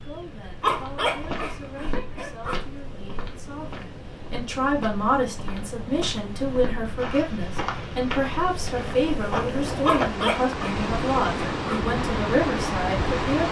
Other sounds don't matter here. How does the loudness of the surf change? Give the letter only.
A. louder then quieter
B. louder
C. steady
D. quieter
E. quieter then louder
B.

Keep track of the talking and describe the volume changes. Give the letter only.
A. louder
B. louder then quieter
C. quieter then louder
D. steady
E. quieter
A.